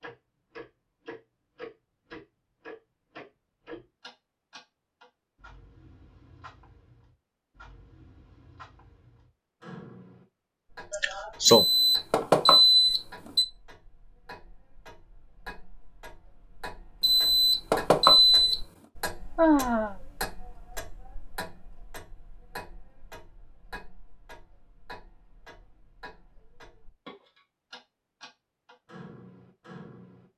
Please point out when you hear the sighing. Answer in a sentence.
You can hear the sighing from 10.9 to 11.7 s and from 19.4 to 19.9 s.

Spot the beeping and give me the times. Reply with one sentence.
You can hear the beeping from 11.4 to 13.4 s and from 17.0 to 18.6 s.